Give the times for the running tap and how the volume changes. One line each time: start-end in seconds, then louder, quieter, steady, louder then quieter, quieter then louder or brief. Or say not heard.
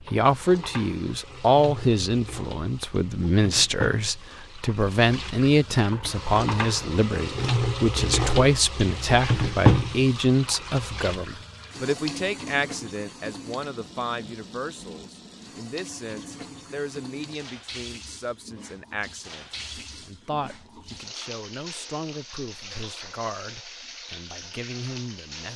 0.0-25.5 louder then quieter.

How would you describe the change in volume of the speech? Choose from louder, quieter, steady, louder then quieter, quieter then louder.
quieter.